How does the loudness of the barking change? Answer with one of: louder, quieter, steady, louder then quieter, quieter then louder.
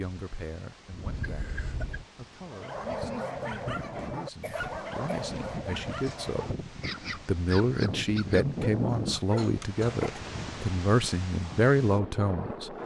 quieter.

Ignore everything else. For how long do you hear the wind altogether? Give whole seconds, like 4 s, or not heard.
13 s.